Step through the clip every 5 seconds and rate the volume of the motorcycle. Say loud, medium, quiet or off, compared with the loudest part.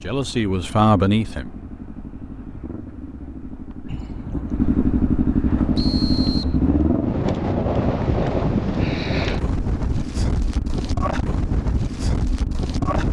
medium, loud, medium.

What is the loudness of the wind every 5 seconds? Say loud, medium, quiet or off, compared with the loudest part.
off, loud, loud.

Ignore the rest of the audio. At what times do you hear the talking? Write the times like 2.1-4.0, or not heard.
0.0-1.6.